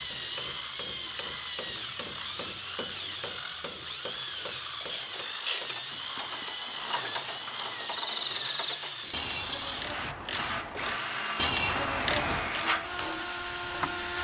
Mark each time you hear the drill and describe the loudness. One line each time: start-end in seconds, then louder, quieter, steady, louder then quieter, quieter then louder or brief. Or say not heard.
0.0-14.2 steady.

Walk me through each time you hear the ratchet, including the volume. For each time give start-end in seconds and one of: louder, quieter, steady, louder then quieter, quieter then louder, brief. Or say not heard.
4.8-13.1 louder.